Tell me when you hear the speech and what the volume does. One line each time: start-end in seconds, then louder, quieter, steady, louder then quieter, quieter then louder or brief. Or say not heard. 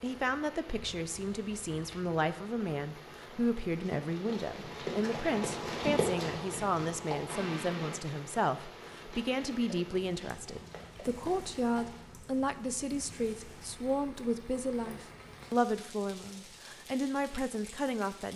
0.0-18.3 steady.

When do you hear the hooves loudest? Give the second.
6 s.